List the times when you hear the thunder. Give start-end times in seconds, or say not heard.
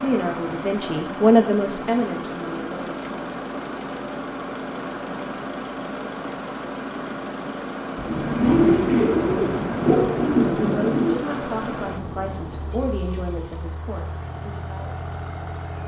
8.0-12.8.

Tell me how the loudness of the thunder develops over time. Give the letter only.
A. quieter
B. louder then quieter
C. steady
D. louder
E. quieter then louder
A.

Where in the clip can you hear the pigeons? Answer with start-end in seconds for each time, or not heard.
8.1-11.2.